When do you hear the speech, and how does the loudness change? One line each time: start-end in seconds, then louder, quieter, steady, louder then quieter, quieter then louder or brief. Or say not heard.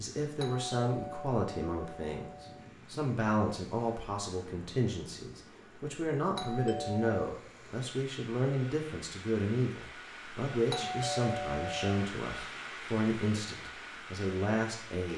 0.0-15.1 steady.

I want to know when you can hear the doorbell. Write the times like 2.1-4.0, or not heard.
0.4-2.7, 6.3-7.2, 10.7-11.9.